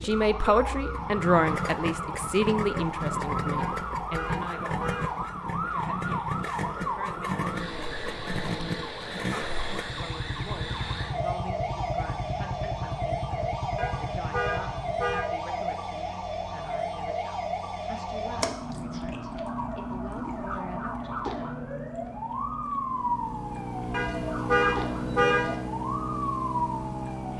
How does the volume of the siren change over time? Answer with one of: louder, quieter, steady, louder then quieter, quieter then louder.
steady.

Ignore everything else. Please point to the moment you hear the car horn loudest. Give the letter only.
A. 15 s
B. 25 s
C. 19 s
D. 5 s
B.